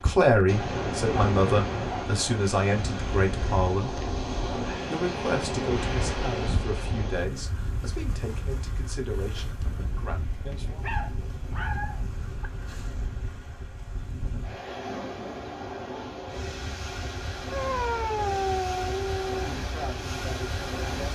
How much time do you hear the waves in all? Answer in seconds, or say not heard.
21 s.